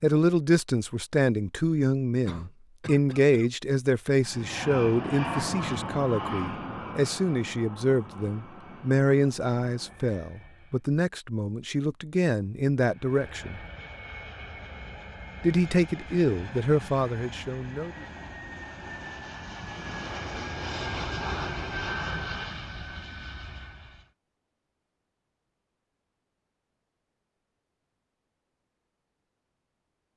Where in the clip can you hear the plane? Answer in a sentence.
The plane can be heard from 4.2 to 10.8 s and from 12.8 to 24.1 s.